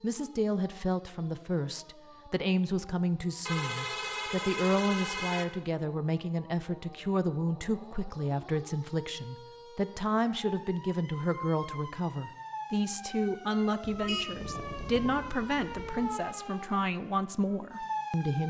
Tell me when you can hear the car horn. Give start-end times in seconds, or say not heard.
3.5-5.5, 13.8-16.1.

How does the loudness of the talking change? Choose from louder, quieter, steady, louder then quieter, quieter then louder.
steady.